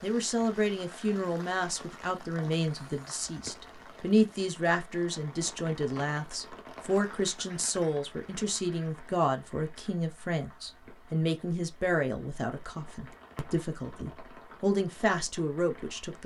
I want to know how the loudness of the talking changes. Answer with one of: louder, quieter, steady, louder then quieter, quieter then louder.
steady.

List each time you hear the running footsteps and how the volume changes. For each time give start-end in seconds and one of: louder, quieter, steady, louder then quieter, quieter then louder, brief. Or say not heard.
not heard.